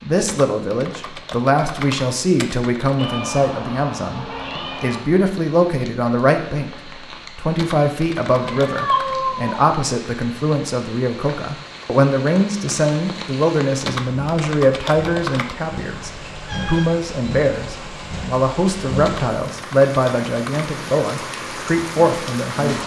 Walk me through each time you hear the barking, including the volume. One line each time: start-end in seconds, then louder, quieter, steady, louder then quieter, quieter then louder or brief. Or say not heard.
not heard.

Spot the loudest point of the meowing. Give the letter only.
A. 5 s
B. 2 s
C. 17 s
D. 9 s
D.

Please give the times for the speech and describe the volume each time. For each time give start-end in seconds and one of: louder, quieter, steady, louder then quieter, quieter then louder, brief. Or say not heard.
0.0-22.8 steady.